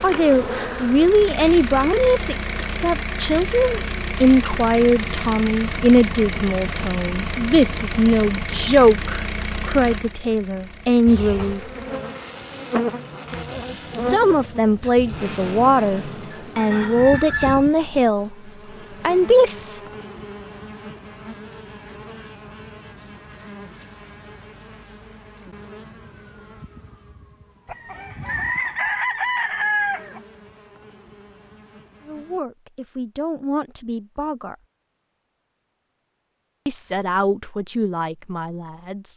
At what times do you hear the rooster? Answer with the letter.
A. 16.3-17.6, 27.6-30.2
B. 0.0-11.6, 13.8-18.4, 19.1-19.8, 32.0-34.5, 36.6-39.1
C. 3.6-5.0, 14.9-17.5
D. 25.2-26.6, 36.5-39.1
A.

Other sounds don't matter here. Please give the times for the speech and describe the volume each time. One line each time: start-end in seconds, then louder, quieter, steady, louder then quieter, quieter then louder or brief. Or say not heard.
0.0-11.6 steady
13.8-18.4 steady
19.1-19.8 brief
32.0-34.5 brief
36.6-39.1 brief.